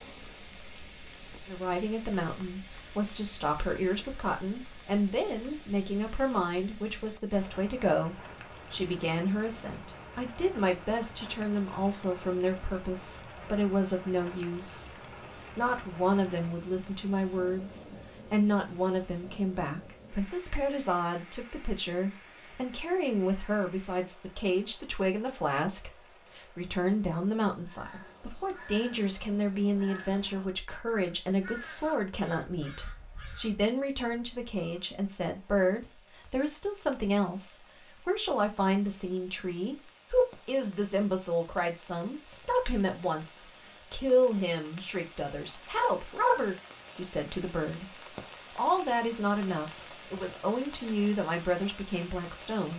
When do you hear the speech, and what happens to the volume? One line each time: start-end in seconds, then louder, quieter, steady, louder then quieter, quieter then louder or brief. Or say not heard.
1.4-14.8 steady
15.6-52.7 steady.